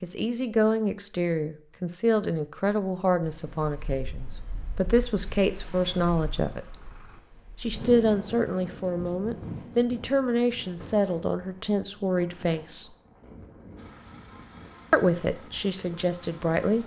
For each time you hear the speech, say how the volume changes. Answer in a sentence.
You can hear the speech from 0.0 to 6.8 s, at a steady volume; from 7.6 to 12.9 s, at a steady volume; and briefly from 14.9 to 16.8 s.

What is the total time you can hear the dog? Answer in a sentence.
You can't hear the dog here.